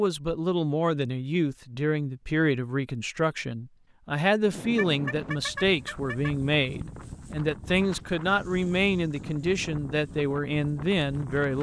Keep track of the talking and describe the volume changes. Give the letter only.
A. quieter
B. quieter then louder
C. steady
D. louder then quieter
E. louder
C.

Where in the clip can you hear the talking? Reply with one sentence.
You can hear the talking from 0.0 to 11.5 s.